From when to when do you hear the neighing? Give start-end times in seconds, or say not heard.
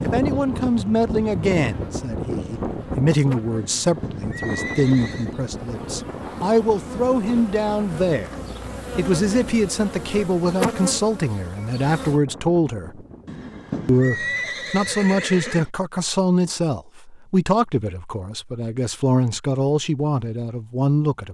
3.5-5.3, 13.2-15.7.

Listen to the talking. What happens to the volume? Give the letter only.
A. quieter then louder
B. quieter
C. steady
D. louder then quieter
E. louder
C.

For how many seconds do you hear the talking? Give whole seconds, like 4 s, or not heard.
20 s.